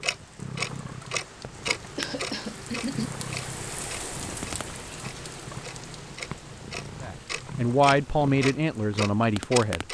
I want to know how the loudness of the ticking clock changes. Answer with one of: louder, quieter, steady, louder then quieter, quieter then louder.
quieter then louder.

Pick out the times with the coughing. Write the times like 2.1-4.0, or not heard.
1.9-3.1.